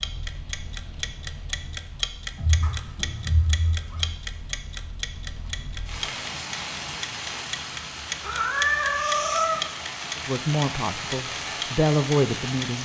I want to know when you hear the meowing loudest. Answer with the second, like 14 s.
9 s.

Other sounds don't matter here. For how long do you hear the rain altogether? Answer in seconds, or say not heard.
13 s.